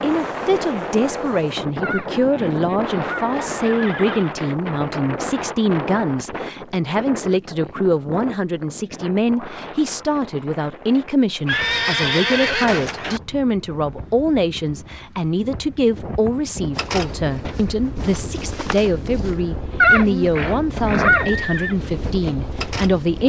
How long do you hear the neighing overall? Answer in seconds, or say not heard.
6 s.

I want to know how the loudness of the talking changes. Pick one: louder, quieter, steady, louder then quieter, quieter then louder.
steady.